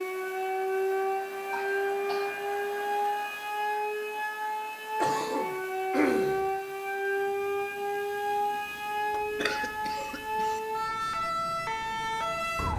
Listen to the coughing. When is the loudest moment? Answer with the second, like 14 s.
6 s.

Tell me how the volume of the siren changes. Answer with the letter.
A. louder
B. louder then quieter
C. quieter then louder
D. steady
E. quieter
D.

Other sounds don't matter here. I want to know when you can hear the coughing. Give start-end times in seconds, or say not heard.
1.5-2.3, 5.0-6.5, 9.1-10.6.